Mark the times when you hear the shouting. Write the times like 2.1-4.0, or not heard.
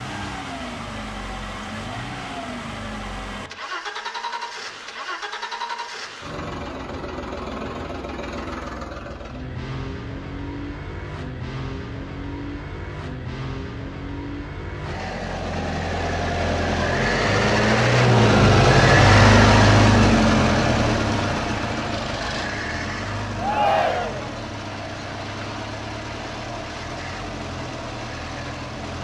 23.4-24.3.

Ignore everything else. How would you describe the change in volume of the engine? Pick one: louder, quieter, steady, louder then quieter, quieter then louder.
louder then quieter.